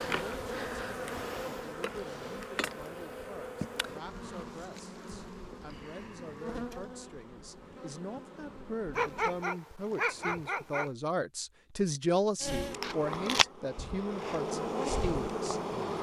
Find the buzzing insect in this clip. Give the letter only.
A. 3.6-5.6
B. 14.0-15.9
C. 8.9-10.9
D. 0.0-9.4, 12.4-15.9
D.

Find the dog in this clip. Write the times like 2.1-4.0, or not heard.
8.9-10.9.